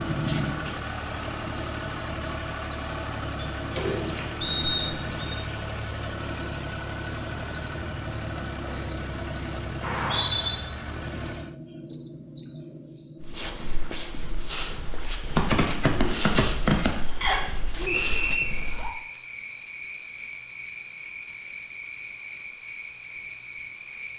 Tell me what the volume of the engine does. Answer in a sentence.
The volume of the engine stays about the same.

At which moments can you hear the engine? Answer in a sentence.
You can hear the engine from 0.0 to 11.6 s.